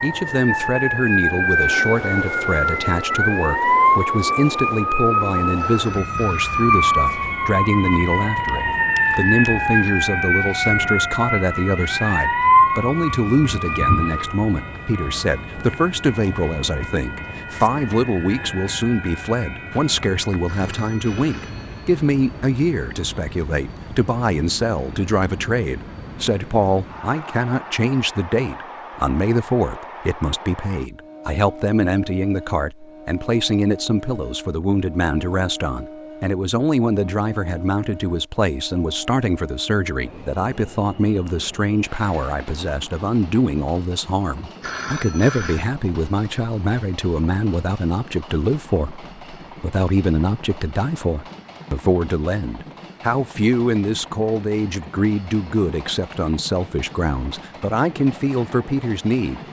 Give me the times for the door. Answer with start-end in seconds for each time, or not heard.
not heard.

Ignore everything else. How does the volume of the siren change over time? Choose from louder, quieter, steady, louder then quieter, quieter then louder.
quieter.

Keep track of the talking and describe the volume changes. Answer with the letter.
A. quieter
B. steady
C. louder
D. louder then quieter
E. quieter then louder
B.